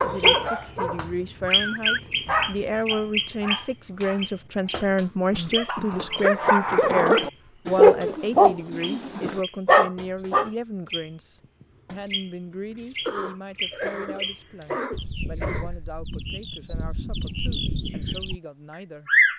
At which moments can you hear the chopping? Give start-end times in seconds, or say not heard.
not heard.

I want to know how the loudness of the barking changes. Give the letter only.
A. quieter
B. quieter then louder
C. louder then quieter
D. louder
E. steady
D.